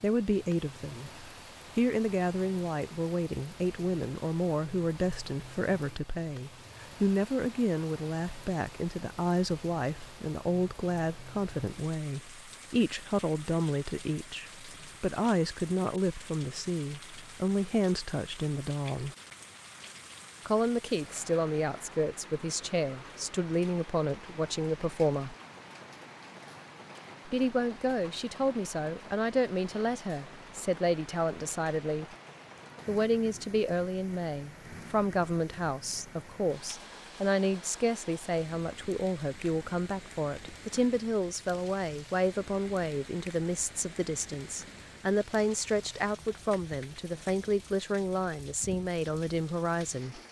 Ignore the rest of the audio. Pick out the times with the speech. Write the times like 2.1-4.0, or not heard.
0.0-19.1, 20.4-25.4, 27.2-32.0, 32.9-50.2.